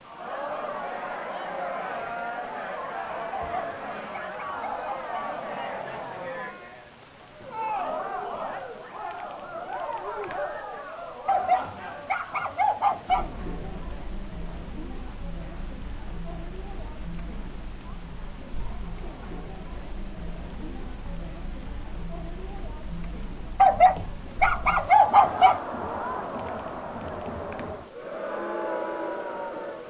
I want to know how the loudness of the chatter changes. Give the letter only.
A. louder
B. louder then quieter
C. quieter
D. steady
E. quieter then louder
E.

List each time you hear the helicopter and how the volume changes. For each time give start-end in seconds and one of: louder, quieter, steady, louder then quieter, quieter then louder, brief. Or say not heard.
not heard.